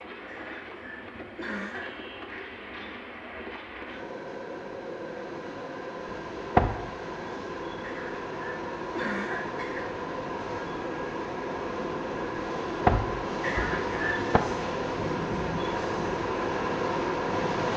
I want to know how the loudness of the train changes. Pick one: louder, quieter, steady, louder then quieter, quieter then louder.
louder.